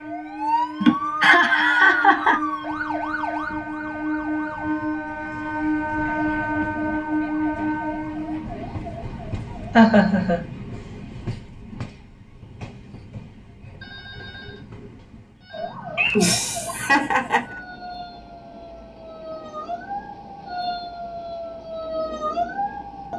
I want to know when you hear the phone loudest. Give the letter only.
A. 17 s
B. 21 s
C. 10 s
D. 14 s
D.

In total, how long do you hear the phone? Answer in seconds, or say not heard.
2 s.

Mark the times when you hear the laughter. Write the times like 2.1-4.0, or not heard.
0.8-2.4, 9.8-10.4, 15.9-17.4.